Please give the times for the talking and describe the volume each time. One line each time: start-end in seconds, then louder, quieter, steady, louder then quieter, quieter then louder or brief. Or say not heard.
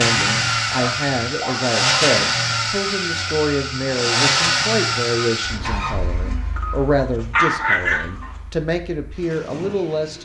0.0-10.2 steady.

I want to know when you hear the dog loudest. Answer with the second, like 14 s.
8 s.